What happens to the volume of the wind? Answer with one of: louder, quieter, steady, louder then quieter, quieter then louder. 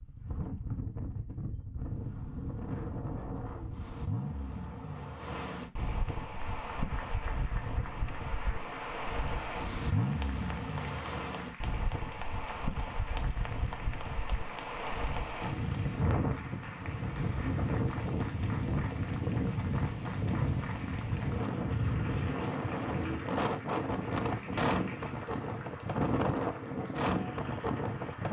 louder.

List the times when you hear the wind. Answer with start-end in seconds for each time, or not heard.
0.0-28.2.